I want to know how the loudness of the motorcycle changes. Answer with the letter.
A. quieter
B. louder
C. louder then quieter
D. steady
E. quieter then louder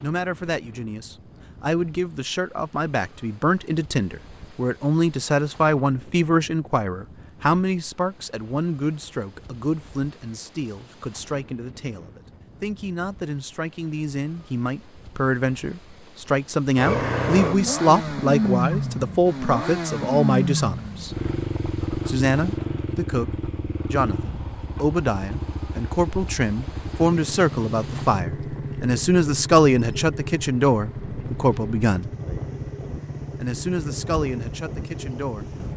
A.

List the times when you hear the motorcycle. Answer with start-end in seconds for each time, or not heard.
16.8-35.7.